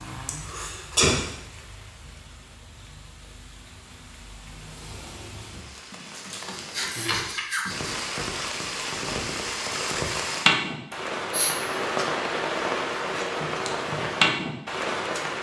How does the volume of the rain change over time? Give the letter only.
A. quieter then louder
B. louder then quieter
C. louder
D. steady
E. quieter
C.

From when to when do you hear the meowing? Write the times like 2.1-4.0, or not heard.
not heard.